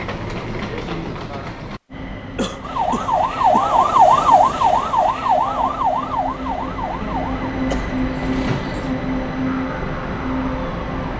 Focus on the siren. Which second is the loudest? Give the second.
4 s.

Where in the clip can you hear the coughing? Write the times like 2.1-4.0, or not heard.
2.4-3.7, 7.7-8.9.